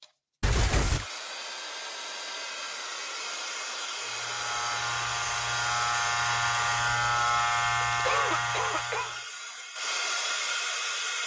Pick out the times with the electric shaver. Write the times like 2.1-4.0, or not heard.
4.0-9.2.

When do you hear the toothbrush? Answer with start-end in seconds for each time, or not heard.
not heard.